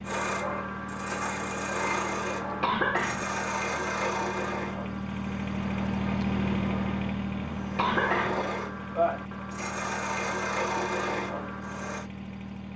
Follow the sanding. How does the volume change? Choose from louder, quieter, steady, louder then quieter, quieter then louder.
quieter then louder.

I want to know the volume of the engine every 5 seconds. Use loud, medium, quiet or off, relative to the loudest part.
medium, loud, medium.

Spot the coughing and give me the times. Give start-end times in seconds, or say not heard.
2.6-3.2, 7.8-8.4.